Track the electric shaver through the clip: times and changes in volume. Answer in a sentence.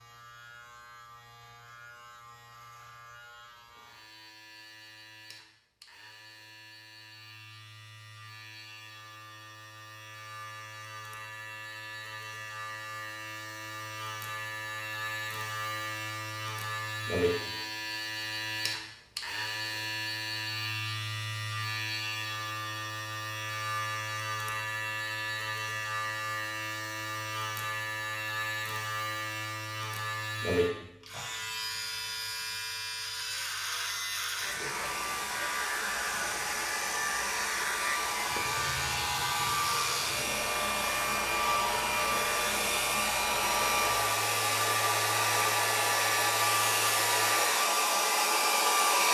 You can hear the electric shaver from 0.0 to 47.4 s, getting louder.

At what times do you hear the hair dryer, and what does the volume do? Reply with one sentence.
The hair dryer can be heard from 34.4 to 49.1 s, getting louder.